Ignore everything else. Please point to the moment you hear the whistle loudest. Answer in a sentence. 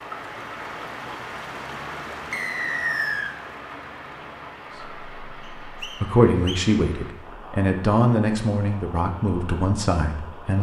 The volume of the whistle peaks at 3 seconds.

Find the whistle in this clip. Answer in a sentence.
The whistle can be heard from 2.3 to 3.4 s and from 5.4 to 6.7 s.